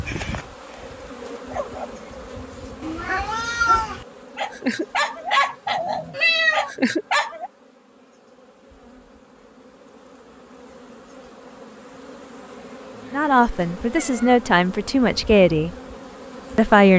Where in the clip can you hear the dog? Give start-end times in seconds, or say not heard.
0.1-7.5.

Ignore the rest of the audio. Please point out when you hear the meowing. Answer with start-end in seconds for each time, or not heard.
2.8-4.0, 6.1-6.7, 12.9-14.4.